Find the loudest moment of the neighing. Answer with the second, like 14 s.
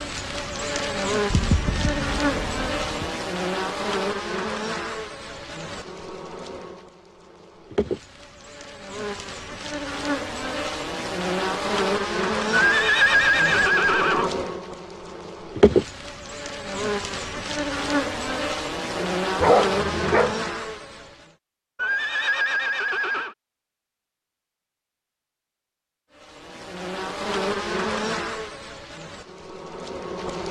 13 s.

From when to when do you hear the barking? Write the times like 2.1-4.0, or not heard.
18.9-20.4.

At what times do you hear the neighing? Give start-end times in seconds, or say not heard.
1.3-3.1, 12.5-14.3, 21.8-23.4.